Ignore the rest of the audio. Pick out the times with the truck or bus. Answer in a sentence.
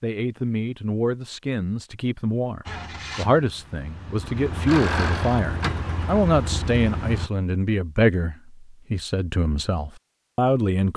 The truck or bus can be heard from 2.6 to 7.3 s.